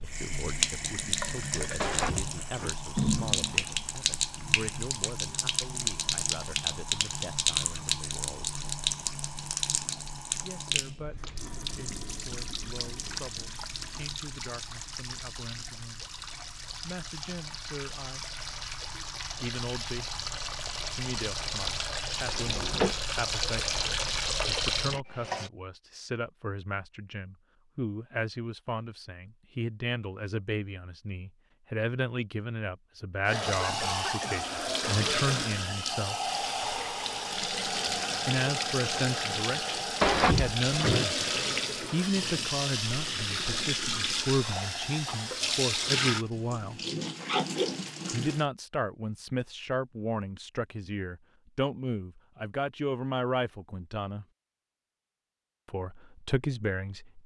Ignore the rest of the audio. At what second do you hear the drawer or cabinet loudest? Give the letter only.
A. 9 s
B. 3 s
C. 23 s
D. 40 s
D.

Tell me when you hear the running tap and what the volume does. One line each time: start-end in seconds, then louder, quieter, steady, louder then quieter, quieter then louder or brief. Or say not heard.
0.0-25.5 quieter then louder
33.2-48.5 steady.